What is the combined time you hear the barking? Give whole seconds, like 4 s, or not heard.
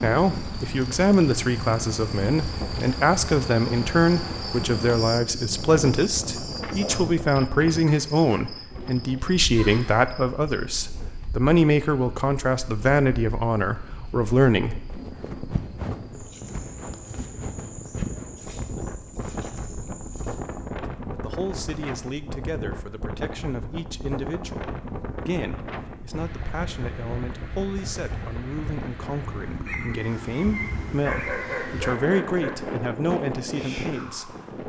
3 s.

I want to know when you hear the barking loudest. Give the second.
31 s.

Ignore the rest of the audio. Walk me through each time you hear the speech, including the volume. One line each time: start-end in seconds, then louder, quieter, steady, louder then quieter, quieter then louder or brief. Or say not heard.
0.0-14.8 steady
21.1-34.4 louder.